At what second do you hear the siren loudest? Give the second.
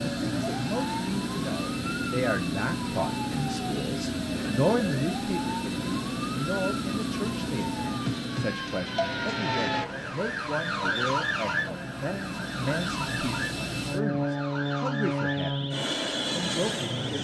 11 s.